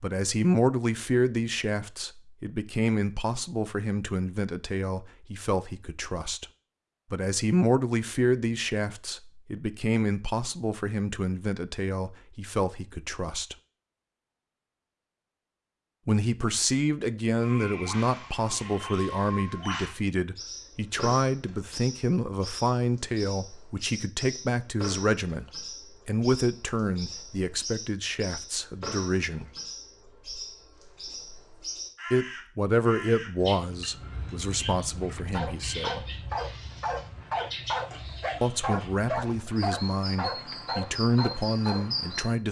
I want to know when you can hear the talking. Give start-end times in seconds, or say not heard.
0.0-6.5, 7.1-13.6, 16.1-29.5, 32.1-36.0, 38.4-42.4.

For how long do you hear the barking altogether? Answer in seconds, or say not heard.
7 s.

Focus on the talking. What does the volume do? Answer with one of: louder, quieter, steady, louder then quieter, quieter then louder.
steady.